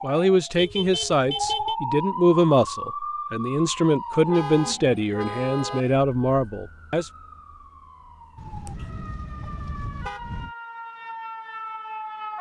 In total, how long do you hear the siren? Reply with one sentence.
The siren can be heard for 12 seconds in total.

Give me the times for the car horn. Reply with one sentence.
You can hear the car horn from 0.6 to 1.8 s, from 4.2 to 5.8 s and from 8.3 to 10.6 s.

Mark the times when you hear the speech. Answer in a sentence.
The speech can be heard from 0.0 to 7.1 s.